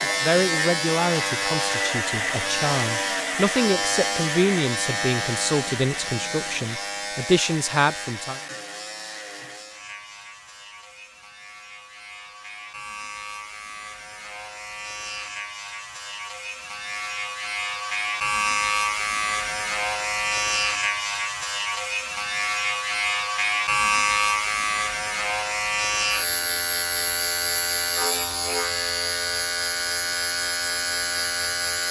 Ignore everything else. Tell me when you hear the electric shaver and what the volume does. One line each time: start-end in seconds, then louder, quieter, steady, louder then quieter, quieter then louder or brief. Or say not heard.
0.0-31.8 quieter then louder.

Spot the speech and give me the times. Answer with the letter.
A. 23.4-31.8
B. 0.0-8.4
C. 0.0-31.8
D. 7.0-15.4
B.